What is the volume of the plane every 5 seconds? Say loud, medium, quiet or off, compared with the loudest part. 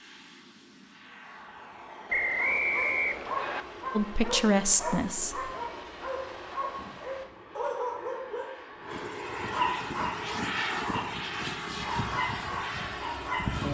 quiet, medium, loud.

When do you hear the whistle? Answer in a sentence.
The whistle can be heard from 2.1 to 3.6 s.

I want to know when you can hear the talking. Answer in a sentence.
The talking can be heard from 3.9 to 5.5 s.